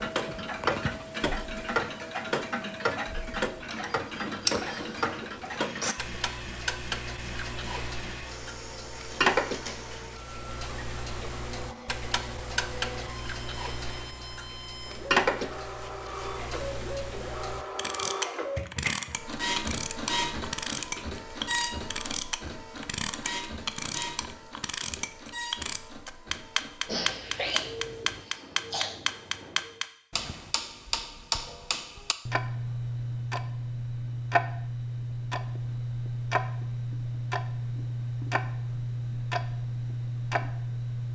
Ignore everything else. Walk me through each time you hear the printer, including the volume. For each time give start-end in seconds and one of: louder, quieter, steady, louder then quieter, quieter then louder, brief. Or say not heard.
0.1-29.9 louder then quieter.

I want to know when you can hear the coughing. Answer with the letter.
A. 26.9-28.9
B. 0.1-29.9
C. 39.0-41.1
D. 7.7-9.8
A.